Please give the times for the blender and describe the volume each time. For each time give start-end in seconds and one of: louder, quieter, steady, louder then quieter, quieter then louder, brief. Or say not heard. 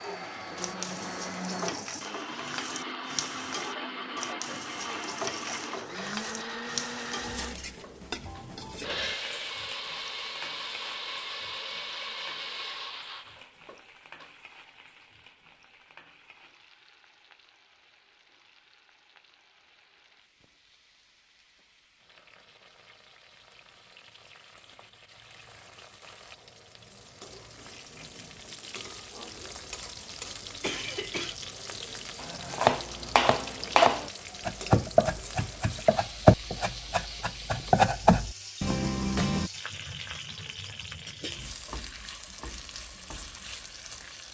0.0-14.3 steady.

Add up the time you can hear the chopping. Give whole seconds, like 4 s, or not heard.
7 s.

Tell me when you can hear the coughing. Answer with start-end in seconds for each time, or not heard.
30.6-31.4.